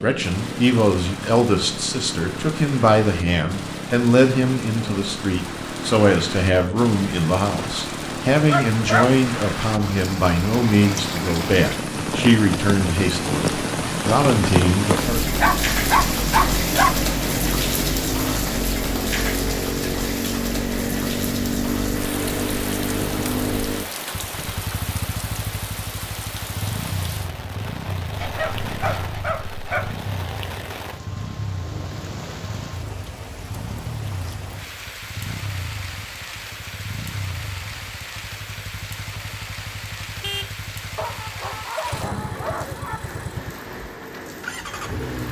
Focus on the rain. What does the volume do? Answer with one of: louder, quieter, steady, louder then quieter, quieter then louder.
louder then quieter.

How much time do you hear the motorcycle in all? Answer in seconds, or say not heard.
45 s.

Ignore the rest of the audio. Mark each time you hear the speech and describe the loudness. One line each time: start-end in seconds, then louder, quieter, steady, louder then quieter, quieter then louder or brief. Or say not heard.
0.0-15.2 steady.